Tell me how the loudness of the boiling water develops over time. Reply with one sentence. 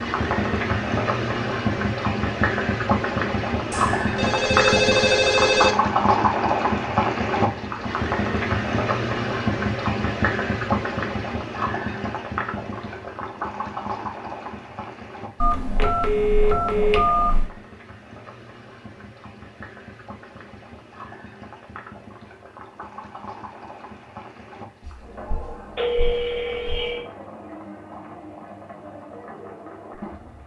The loudness of the boiling water goes down.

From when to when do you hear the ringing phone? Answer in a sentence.
You can hear the ringing phone from 3.7 to 5.8 s, from 15.4 to 17.5 s and from 24.8 to 27.1 s.